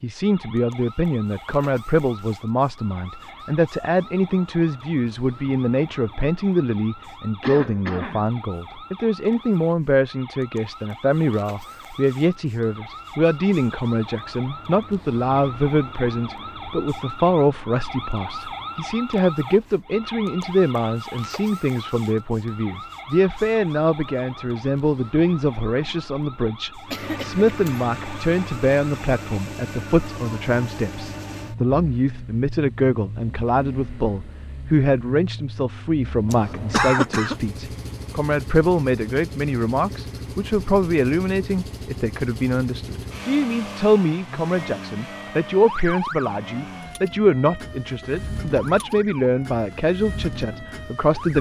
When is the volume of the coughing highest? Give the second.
37 s.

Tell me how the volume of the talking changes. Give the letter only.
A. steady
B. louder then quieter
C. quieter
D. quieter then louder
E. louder
A.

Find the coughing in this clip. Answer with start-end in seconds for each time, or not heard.
7.4-8.3, 26.9-27.9, 36.2-37.4.